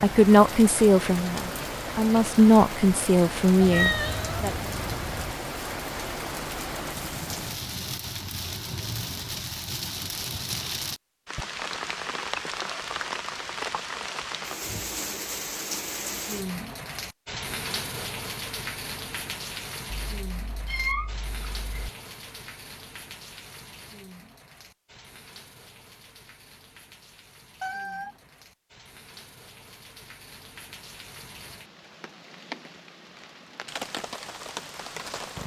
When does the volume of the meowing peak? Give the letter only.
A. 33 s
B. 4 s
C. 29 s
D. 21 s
B.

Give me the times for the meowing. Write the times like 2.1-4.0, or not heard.
3.6-5.3, 19.9-21.9, 27.6-28.2.